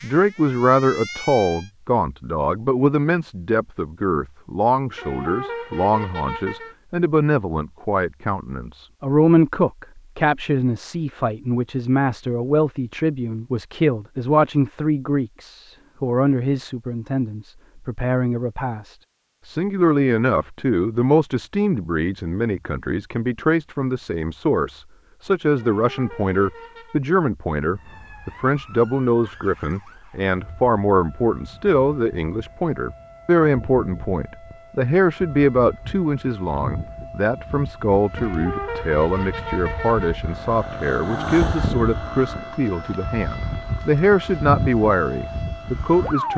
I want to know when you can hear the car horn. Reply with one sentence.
The car horn can be heard from 5.0 to 6.8 s, from 25.6 to 27.0 s and from 38.1 to 40.2 s.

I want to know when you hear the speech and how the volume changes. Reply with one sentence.
The speech can be heard from 0.0 to 46.3 s, at a steady volume.